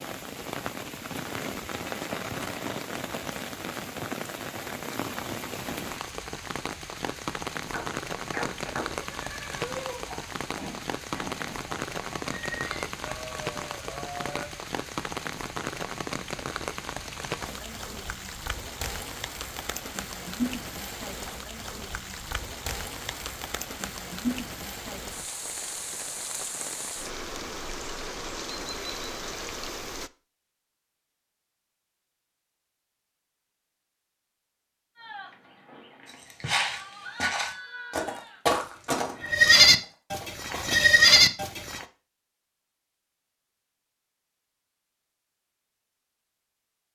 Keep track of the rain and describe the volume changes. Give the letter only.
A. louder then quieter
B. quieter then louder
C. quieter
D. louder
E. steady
E.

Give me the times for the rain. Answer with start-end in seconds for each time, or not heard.
0.0-30.1.